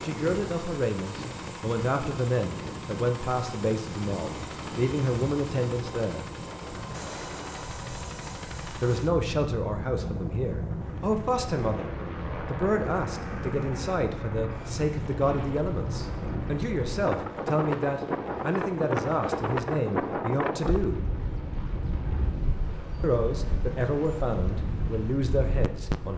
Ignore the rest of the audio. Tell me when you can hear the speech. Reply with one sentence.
You can hear the speech from 0.0 to 6.2 s, from 8.8 to 21.0 s and from 23.0 to 26.1 s.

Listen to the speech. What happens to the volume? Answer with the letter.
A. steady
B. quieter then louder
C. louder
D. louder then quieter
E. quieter
A.